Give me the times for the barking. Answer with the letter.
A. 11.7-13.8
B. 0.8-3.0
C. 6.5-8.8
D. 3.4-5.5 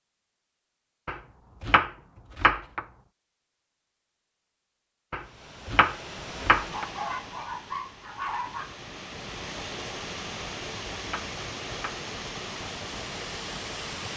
C.